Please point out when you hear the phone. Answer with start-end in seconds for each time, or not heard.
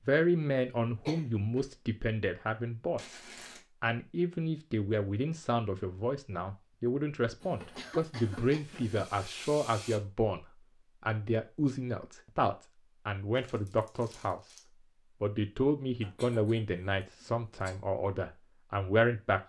not heard.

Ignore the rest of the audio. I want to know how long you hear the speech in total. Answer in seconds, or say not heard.
18 s.